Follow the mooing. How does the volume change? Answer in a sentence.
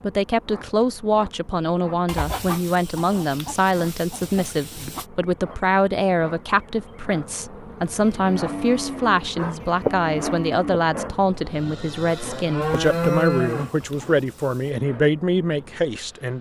The volume of the mooing goes down, then up.